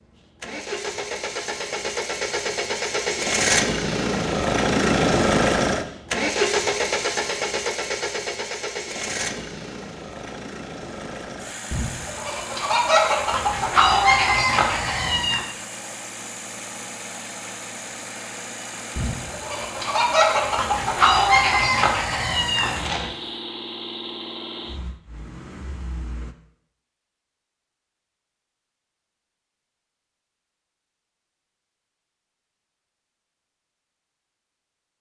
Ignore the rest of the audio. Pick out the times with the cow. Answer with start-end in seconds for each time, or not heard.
not heard.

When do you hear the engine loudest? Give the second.
5 s.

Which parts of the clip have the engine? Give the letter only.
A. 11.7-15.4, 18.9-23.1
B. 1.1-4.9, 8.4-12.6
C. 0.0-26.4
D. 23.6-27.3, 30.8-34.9
C.